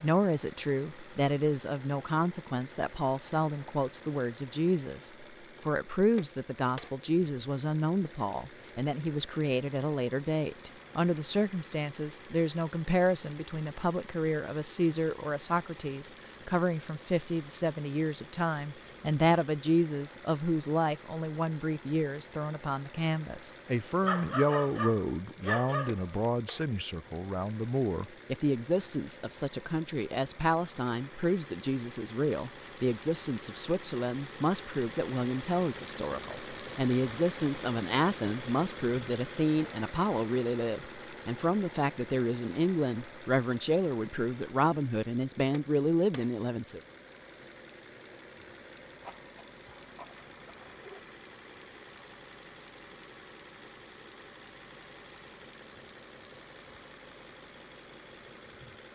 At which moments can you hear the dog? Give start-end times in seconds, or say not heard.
24.0-26.3, 49.0-51.0.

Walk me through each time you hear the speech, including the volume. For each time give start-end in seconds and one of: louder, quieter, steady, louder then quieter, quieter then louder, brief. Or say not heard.
0.0-46.8 steady.